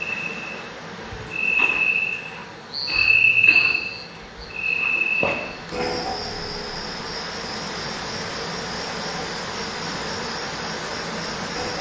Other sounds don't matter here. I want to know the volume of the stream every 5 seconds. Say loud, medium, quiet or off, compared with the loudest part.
medium, loud, loud.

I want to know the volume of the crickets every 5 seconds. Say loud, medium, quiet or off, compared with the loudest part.
loud, medium, quiet.